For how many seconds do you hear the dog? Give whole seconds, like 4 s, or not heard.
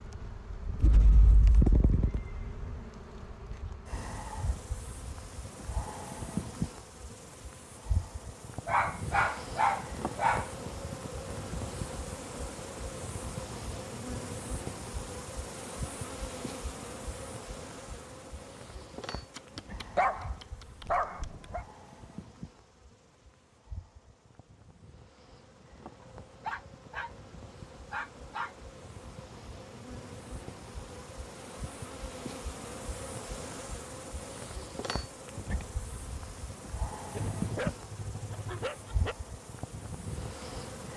9 s.